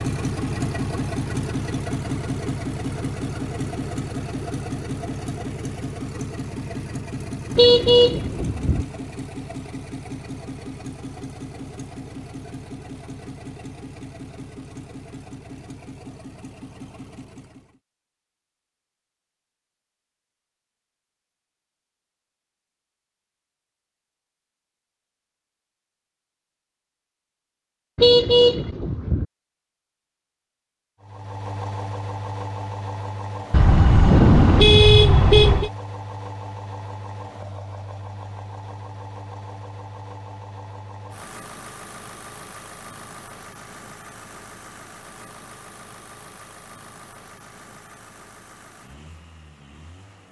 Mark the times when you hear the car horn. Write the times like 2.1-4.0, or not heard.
7.5-8.8, 27.9-29.2, 33.5-35.7.